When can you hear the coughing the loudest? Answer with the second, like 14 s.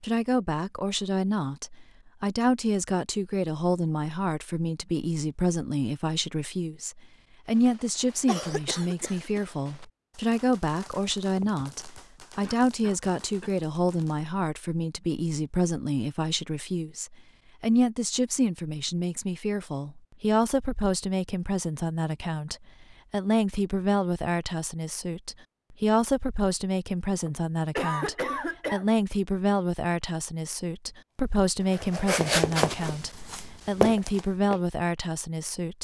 28 s.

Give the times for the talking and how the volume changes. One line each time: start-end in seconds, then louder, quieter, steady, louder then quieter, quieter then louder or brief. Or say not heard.
0.0-35.7 steady.